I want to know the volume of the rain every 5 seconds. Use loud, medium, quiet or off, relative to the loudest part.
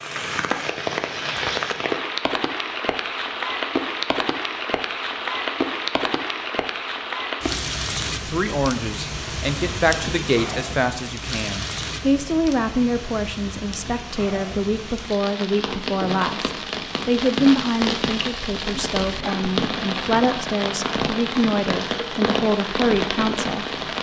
loud, loud, medium, loud, loud.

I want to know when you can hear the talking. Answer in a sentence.
You can hear the talking from 8.2 to 23.6 s.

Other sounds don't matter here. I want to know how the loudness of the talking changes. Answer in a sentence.
The loudness of the talking stays about the same.